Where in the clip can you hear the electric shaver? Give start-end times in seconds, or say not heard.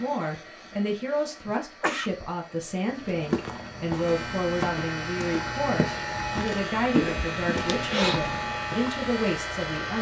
3.9-9.9.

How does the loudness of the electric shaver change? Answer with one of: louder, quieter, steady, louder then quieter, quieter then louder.
steady.